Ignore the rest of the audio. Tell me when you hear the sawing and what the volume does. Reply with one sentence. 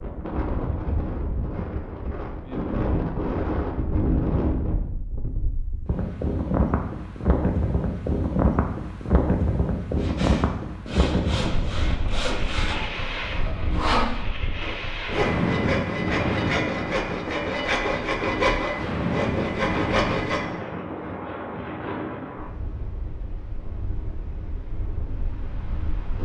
You can hear the sawing from 9.9 to 20.4 s, getting louder.